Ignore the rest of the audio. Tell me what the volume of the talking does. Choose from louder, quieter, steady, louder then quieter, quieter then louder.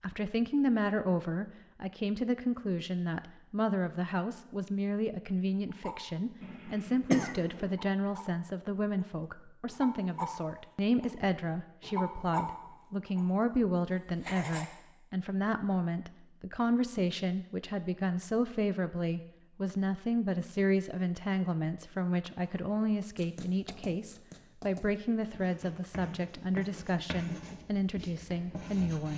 steady.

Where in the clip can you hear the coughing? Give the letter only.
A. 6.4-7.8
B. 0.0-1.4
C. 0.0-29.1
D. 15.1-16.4
A.